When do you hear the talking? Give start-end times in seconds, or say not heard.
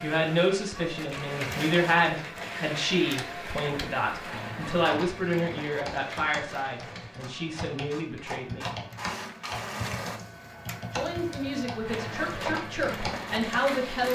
0.0-8.8, 10.9-14.1.